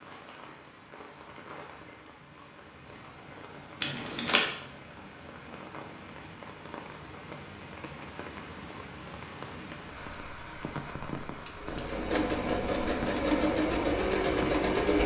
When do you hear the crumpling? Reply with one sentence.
The crumpling can be heard from 3.8 to 4.5 s.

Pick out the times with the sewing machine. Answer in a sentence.
You can hear the sewing machine from 11.6 to 15.0 s.